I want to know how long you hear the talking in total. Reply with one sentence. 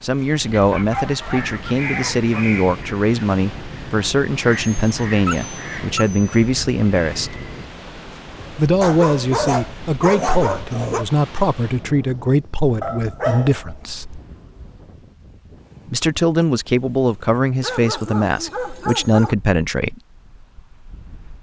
The talking can be heard for 17 seconds in total.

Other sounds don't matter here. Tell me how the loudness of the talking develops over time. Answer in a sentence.
The volume of the talking stays about the same.